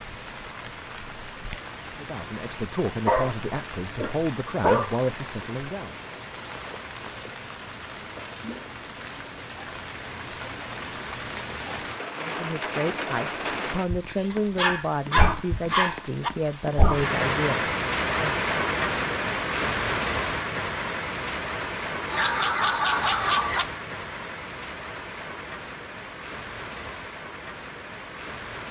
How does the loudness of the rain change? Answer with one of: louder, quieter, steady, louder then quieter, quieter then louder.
louder then quieter.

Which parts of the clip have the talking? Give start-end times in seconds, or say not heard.
1.9-6.0, 12.2-18.4.